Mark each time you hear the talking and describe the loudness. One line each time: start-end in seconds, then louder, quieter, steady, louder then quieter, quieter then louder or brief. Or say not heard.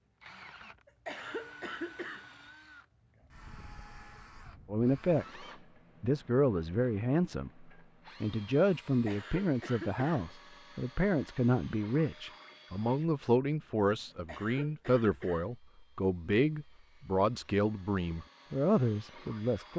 4.7-19.7 steady.